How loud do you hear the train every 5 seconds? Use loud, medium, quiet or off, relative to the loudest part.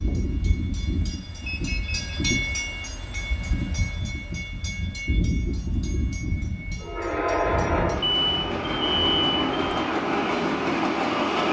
medium, loud, loud.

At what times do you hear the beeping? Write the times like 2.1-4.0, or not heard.
1.4-2.0, 8.0-9.9.